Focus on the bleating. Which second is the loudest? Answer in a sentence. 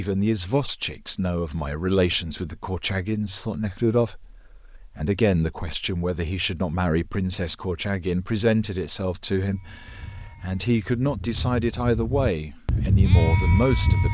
The loudest moment of the bleating is at 13 seconds.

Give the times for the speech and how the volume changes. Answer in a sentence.
The speech can be heard from 0.0 to 14.0 s, at a steady volume.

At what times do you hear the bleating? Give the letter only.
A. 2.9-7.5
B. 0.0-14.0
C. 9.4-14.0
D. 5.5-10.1
C.